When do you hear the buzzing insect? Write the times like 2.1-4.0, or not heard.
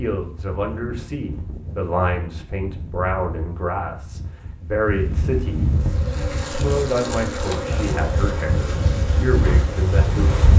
5.7-10.5.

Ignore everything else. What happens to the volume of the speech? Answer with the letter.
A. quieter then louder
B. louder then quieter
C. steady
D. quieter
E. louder
C.